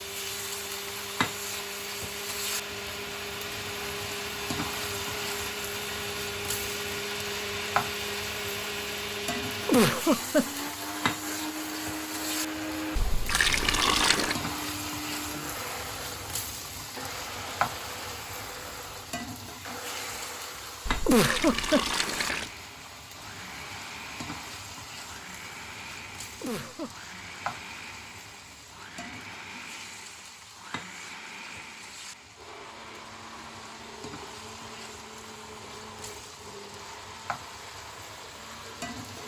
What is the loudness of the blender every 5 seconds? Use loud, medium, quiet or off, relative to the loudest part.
loud, loud, loud, medium, medium, medium, medium, medium.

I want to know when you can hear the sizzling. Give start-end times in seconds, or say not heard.
0.0-39.2.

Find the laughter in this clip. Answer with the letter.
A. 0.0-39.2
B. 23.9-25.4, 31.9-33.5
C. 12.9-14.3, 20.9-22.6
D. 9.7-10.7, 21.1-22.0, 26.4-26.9
D.